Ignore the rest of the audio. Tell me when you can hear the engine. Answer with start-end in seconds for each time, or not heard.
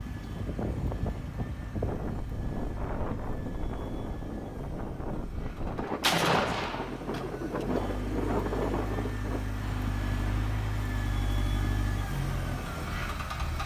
0.0-13.6.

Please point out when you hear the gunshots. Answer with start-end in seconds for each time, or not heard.
6.0-7.7.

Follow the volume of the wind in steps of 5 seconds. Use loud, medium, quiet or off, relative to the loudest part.
loud, loud, medium.